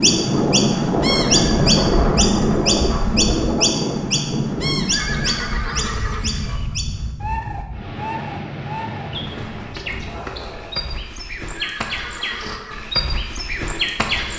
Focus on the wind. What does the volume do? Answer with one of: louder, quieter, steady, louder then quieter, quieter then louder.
quieter.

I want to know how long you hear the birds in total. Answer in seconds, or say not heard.
14 s.